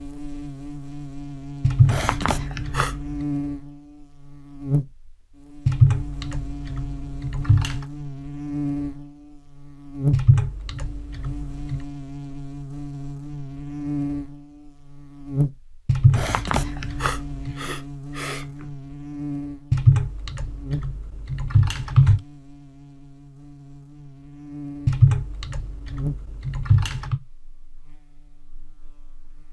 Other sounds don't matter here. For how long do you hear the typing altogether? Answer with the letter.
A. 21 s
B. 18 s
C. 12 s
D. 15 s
C.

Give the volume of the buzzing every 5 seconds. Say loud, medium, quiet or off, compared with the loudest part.
loud, loud, loud, loud, medium, medium.